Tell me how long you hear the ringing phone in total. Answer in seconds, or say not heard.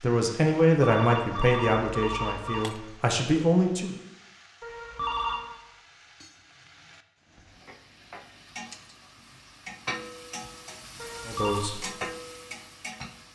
4 s.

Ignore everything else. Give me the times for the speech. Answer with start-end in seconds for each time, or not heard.
0.0-4.0, 11.2-11.9.